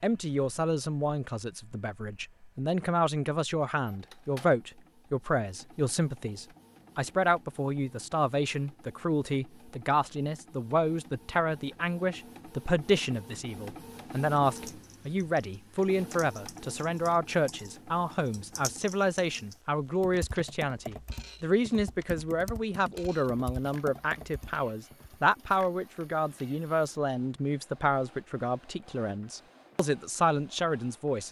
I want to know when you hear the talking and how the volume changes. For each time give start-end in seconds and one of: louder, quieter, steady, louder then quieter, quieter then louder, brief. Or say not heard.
0.0-31.2 steady.